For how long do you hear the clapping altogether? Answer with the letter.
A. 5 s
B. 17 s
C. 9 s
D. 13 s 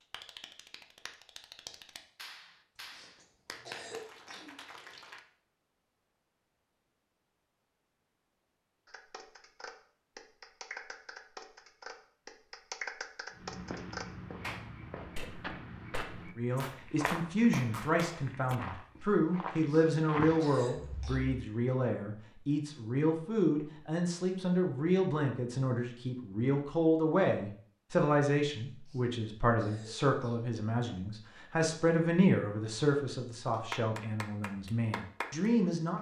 B.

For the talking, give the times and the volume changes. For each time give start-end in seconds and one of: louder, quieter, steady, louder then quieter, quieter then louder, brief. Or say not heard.
16.4-35.9 steady.